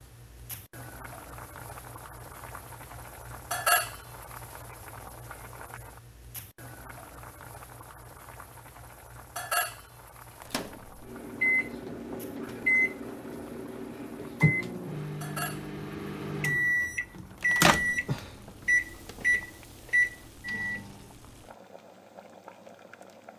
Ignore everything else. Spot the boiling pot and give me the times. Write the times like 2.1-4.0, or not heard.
0.0-23.3.